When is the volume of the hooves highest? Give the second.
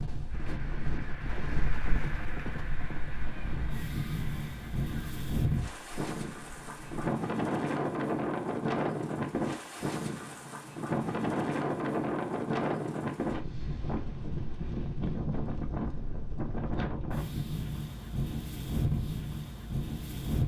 2 s.